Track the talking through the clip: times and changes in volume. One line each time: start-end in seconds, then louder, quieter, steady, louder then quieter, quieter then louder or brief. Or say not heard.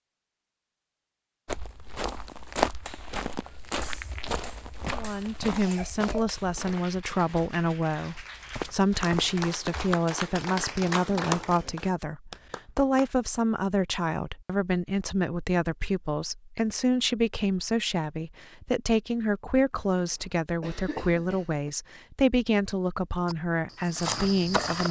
5.0-24.8 steady.